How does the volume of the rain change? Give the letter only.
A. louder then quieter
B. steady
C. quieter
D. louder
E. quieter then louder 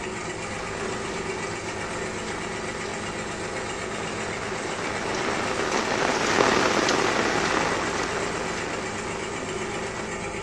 A.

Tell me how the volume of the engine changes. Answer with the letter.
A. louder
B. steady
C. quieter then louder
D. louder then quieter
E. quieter
B.